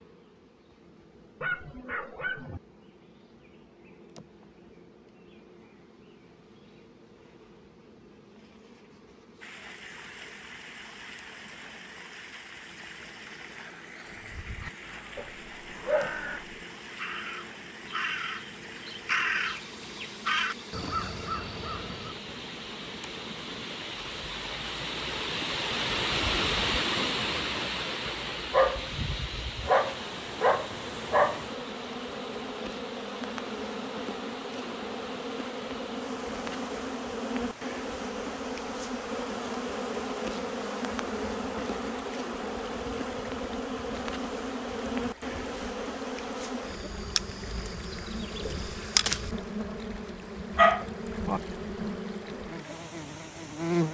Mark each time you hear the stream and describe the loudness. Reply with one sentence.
The stream can be heard from 9.4 to 53.8 s, getting louder then quieter.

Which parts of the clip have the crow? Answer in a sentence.
You can hear the crow from 14.2 to 22.2 s.